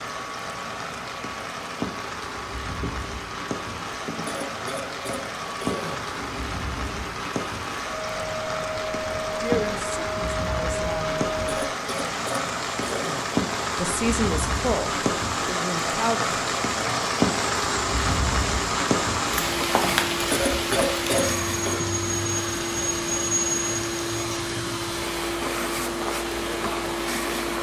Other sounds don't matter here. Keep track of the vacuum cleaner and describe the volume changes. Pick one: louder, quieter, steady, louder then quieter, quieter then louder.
louder.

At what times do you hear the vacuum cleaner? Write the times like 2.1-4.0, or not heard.
0.0-27.5.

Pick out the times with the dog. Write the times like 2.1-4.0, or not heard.
not heard.